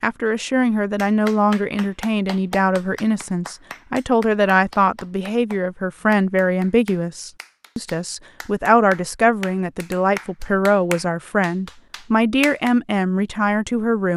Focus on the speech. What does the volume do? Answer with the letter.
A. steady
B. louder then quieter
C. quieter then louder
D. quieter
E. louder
A.